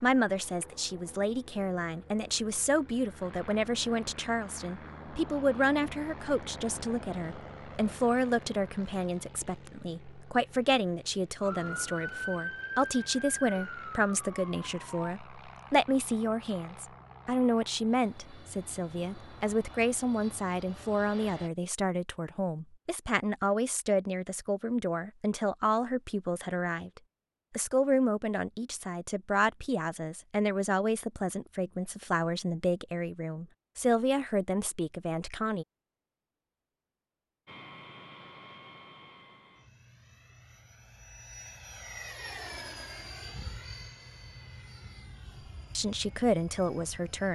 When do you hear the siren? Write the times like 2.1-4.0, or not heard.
11.4-15.2.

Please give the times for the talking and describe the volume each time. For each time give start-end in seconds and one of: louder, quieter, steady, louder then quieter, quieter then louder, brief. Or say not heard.
0.0-35.6 steady
45.8-47.2 brief.